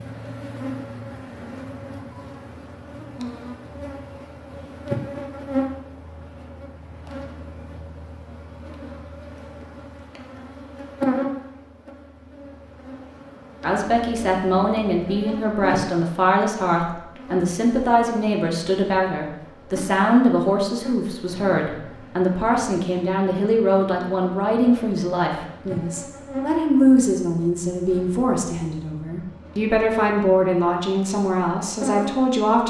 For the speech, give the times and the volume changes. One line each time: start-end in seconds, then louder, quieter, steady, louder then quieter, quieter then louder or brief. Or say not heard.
13.6-32.6 steady.